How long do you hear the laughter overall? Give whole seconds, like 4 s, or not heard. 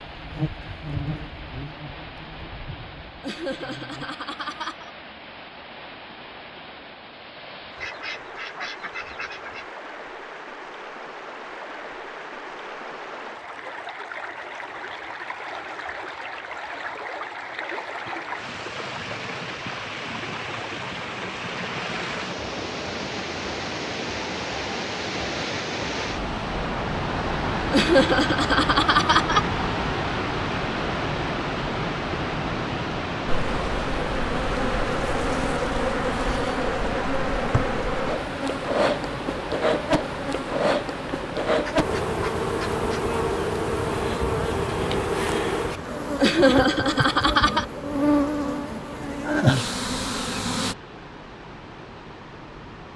5 s.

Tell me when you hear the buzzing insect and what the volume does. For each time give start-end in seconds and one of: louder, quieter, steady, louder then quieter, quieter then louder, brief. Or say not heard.
0.0-4.2 quieter
33.2-50.8 steady.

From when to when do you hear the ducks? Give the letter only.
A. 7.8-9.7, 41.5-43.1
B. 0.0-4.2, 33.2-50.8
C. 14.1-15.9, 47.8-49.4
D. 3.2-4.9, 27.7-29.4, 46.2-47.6
A.